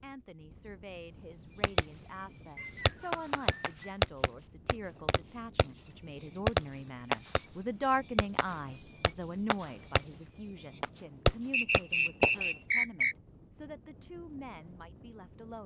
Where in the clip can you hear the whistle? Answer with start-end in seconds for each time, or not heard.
2.5-4.0, 11.5-13.2.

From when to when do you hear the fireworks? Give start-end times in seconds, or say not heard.
1.3-12.4.